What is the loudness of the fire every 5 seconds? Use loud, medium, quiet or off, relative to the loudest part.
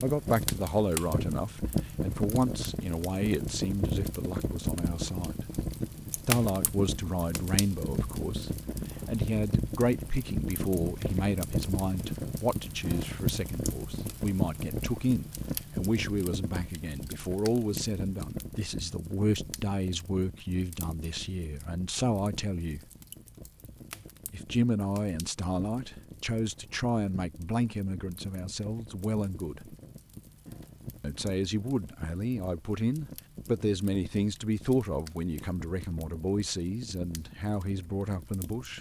loud, loud, loud, medium, quiet, quiet, quiet, quiet.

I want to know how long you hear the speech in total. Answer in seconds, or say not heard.
35 s.